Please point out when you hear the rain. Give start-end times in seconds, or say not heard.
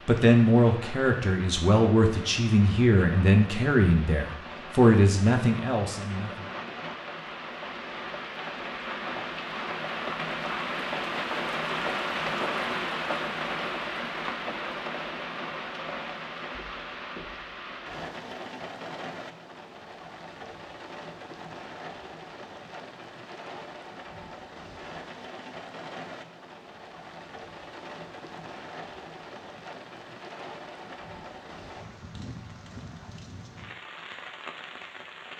0.0-35.3.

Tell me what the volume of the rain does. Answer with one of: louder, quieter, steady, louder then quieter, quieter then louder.
louder then quieter.